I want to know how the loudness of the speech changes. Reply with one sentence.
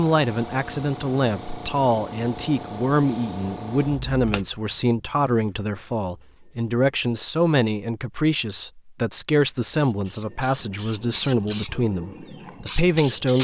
The loudness of the speech stays about the same.